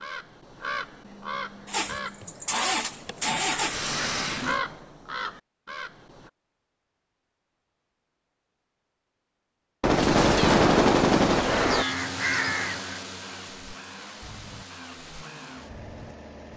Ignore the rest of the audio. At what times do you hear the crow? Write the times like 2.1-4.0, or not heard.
0.0-6.3, 11.3-16.5.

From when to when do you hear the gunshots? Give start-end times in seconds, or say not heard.
9.8-11.8.